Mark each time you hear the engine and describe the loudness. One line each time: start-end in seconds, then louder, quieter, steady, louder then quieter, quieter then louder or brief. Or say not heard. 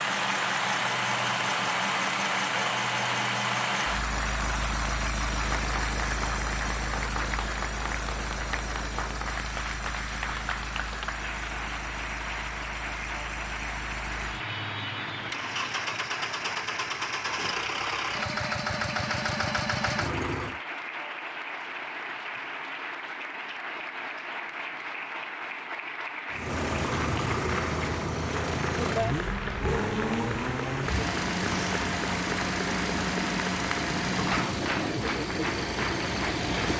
0.0-20.6 quieter then louder
26.3-36.7 steady.